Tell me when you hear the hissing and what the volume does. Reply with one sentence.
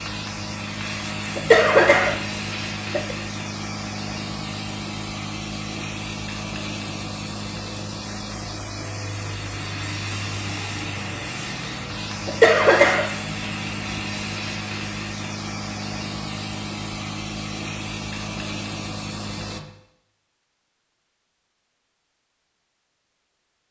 The hissing can be heard from 0.0 to 19.6 s, at a steady volume.